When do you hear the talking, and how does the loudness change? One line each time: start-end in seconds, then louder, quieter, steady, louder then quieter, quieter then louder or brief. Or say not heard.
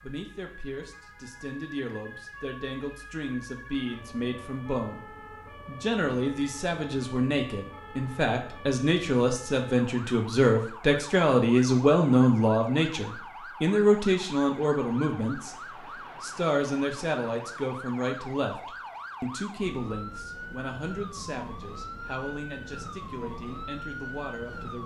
0.0-24.8 louder then quieter.